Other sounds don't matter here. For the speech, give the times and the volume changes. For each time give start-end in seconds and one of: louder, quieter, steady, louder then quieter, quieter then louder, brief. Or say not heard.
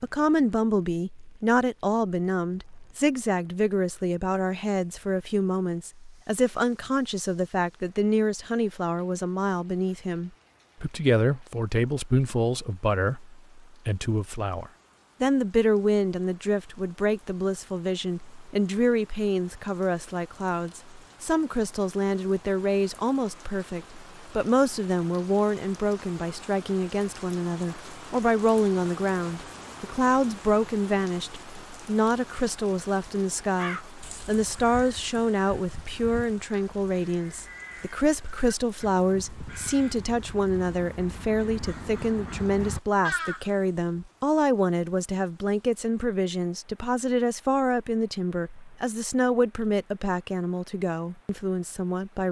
0.0-52.2 steady.